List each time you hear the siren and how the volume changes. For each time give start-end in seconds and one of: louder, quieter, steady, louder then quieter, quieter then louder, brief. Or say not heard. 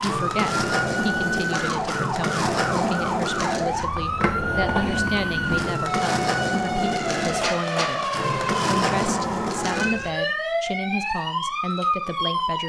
0.0-12.6 steady.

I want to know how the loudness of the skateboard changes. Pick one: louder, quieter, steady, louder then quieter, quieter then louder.
steady.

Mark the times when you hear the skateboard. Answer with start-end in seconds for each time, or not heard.
0.0-10.2.